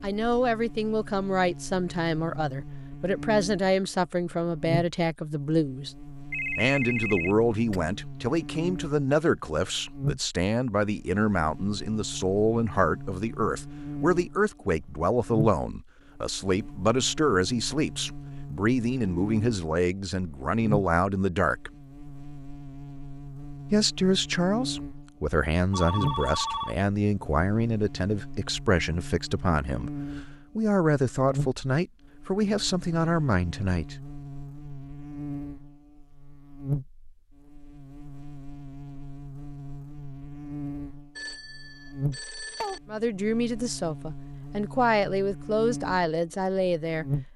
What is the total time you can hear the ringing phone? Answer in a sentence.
The ringing phone can be heard for 4 seconds in total.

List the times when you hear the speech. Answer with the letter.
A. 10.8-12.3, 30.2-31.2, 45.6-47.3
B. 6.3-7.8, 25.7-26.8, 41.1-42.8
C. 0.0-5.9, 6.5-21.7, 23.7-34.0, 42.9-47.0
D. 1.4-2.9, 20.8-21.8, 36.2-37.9
C.